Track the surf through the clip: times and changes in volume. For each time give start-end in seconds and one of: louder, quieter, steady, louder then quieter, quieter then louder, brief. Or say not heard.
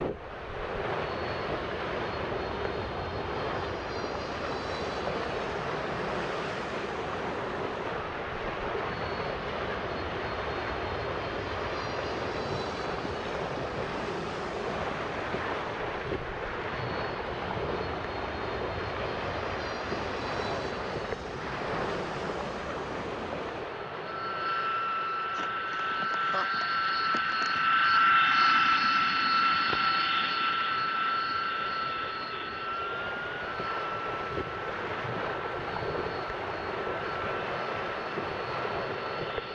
0.0-39.4 quieter then louder.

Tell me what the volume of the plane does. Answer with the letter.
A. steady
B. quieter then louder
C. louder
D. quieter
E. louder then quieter
E.